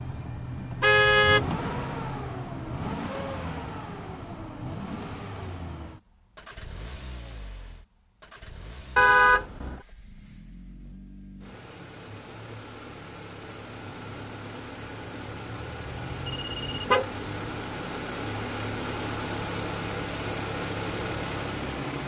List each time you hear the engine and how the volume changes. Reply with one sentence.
You can hear the engine from 0.0 to 22.0 s, getting quieter then louder.